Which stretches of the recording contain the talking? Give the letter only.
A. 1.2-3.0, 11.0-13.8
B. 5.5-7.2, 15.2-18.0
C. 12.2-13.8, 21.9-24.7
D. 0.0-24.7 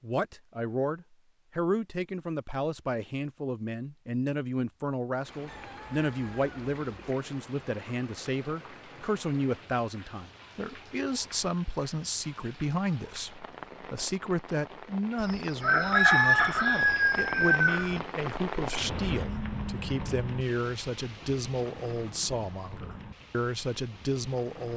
D.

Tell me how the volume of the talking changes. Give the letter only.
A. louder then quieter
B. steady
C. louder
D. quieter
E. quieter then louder
B.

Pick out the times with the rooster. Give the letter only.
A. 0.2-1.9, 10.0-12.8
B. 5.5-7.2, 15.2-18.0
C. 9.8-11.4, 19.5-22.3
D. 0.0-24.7
B.